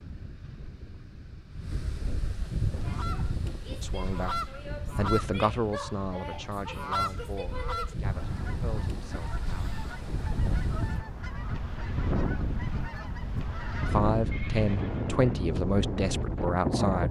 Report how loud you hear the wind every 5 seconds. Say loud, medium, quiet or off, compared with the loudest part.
medium, medium, loud, loud.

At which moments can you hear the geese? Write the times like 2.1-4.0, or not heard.
2.6-14.0.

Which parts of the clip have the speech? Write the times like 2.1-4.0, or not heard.
3.8-9.8, 13.9-17.0.